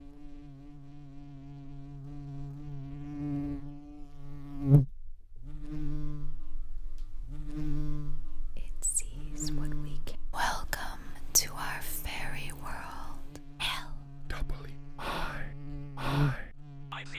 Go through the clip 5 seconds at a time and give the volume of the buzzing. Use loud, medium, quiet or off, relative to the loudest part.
loud, medium, quiet, loud.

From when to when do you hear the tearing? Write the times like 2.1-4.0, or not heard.
not heard.